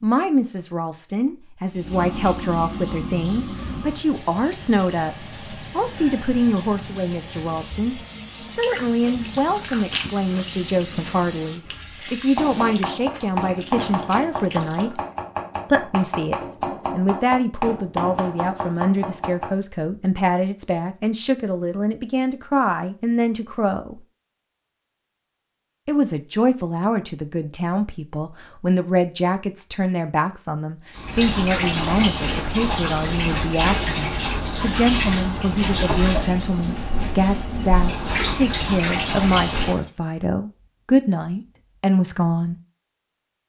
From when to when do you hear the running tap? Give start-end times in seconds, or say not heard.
1.7-12.9, 30.9-39.9.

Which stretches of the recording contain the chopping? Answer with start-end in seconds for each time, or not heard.
12.3-19.6.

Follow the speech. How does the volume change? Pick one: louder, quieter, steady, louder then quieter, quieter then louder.
steady.